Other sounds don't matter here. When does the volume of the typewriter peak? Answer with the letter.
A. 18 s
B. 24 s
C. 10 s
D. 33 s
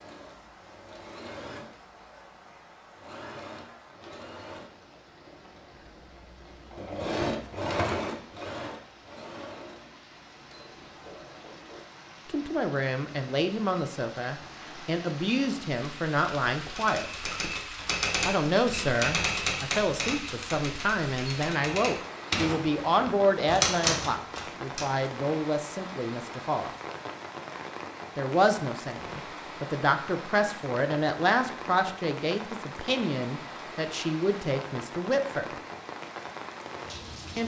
B.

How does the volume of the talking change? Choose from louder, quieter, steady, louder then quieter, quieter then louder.
steady.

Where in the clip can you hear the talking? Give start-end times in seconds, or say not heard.
12.2-17.2, 18.2-26.7, 28.1-35.5.